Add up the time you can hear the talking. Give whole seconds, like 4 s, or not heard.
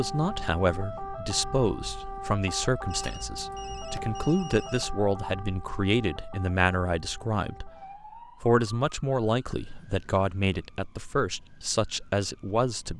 12 s.